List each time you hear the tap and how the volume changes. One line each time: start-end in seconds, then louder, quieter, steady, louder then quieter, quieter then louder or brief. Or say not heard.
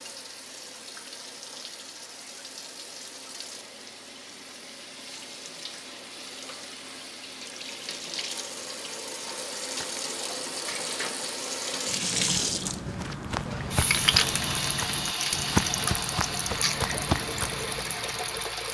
0.0-18.6 louder.